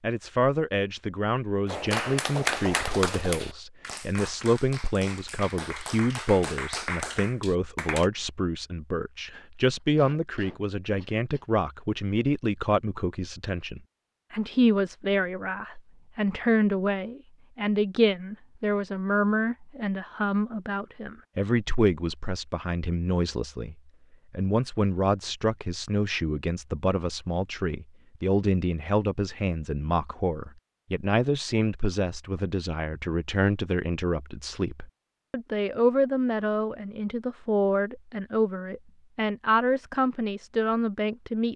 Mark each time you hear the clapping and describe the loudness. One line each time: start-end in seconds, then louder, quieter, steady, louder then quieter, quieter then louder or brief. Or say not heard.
1.6-8.1 quieter then louder.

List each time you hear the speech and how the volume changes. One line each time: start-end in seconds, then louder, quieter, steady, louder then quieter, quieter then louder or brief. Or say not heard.
0.0-41.5 steady.